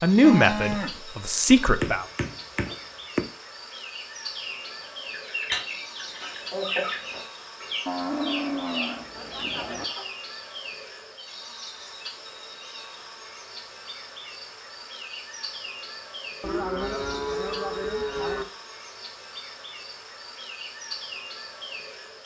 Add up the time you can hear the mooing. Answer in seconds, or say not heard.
5 s.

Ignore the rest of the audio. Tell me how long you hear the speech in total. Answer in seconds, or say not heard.
2 s.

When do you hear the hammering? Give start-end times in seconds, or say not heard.
1.8-3.2.